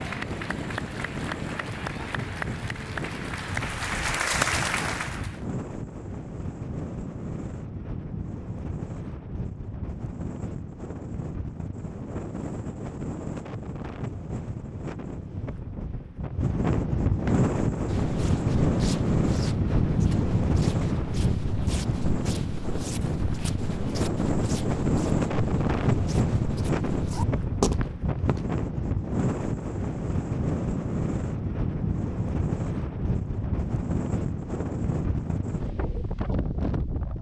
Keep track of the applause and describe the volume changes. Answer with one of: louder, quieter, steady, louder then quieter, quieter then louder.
louder.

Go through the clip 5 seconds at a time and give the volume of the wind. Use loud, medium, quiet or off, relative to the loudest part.
medium, medium, medium, loud, loud, loud, loud, medium.